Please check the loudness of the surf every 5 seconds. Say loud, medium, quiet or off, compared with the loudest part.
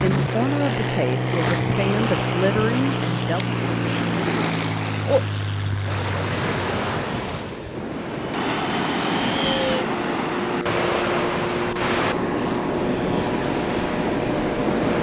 medium, loud, loud.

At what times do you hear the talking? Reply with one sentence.
The talking can be heard from 0.0 to 3.5 s.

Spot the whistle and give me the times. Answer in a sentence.
You can't hear the whistle here.